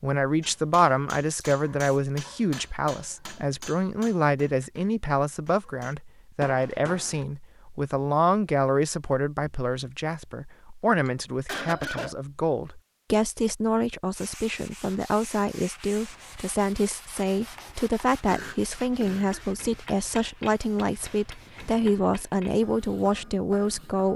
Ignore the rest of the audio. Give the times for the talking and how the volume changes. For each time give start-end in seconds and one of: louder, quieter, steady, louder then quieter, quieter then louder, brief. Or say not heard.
0.0-24.1 steady.